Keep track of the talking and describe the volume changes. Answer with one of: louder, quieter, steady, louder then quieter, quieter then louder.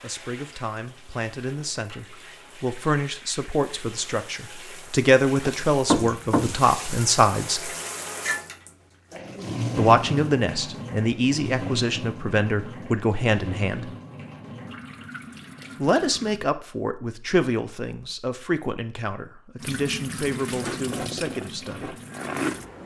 louder then quieter.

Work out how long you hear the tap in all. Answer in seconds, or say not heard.
20 s.